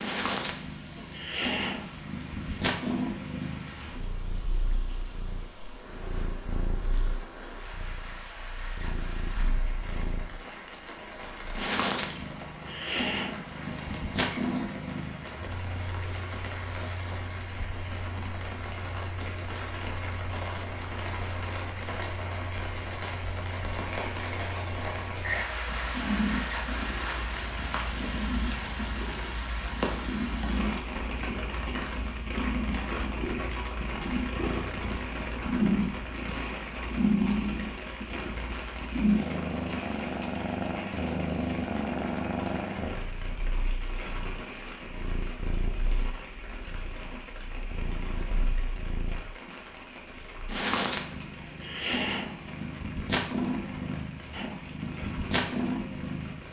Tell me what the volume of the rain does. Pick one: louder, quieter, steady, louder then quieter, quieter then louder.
louder then quieter.